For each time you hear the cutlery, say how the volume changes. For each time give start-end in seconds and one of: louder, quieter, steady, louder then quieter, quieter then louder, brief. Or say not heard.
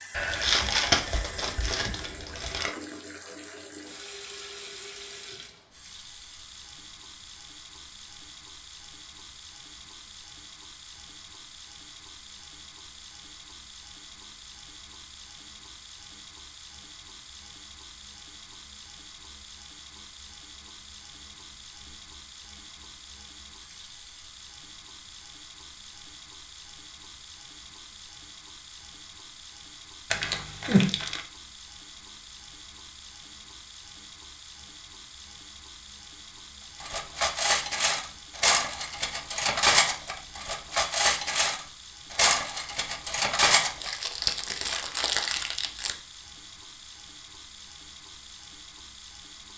36.8-43.9 steady.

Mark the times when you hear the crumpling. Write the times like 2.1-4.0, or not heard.
0.1-2.8, 30.1-31.2, 43.8-46.0.